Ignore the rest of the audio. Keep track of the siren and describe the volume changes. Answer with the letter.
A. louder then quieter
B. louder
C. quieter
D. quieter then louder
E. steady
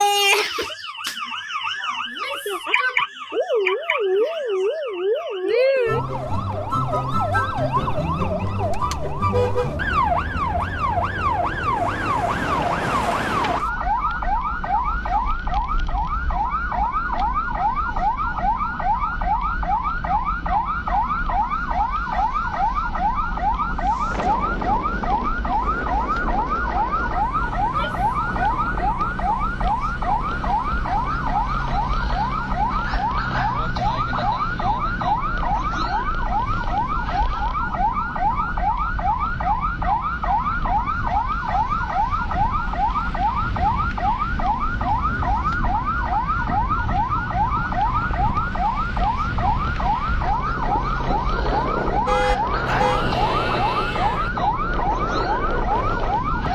E.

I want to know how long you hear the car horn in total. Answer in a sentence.
The car horn can be heard for 2 seconds in total.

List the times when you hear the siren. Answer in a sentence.
The siren can be heard from 0.0 to 56.4 s.